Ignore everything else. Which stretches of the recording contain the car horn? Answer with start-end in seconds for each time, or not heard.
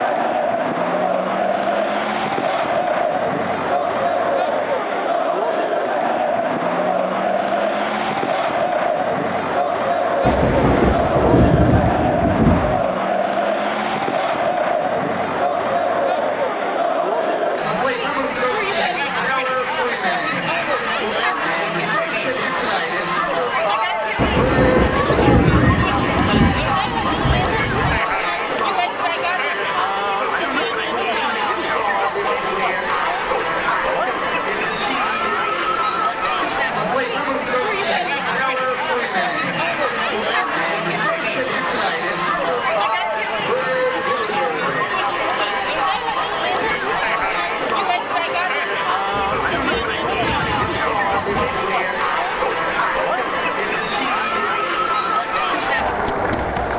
not heard.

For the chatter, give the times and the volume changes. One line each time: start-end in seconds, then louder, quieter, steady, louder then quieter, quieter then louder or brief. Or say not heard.
0.0-56.7 steady.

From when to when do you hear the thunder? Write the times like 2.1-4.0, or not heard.
10.2-12.9, 24.1-28.0, 49.1-51.7.